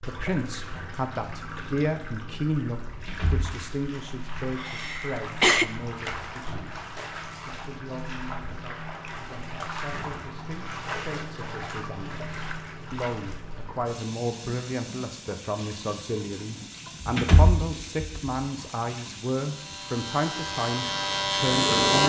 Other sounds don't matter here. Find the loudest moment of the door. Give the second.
17 s.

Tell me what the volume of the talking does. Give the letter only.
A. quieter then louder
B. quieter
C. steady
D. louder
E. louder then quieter
A.